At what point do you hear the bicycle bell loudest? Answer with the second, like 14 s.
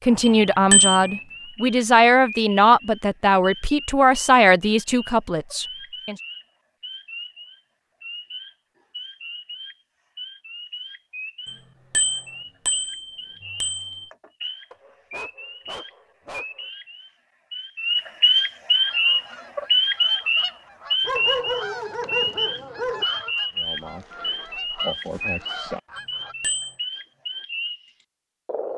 1 s.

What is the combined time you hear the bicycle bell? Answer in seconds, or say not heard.
4 s.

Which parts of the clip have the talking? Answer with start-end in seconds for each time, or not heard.
0.1-6.2.